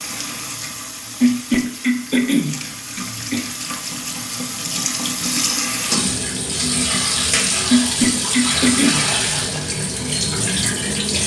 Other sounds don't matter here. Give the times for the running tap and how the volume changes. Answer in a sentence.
You can hear the running tap from 0.0 to 11.2 s, getting louder.